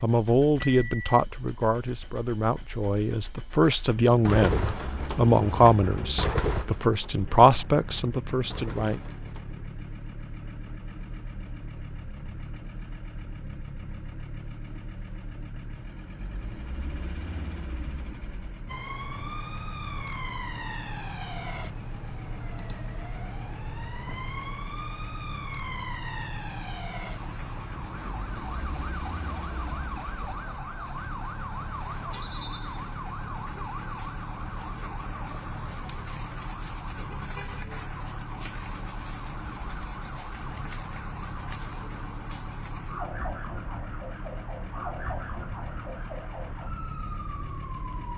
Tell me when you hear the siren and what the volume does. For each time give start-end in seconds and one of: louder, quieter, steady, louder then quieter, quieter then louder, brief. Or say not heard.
18.6-48.1 steady.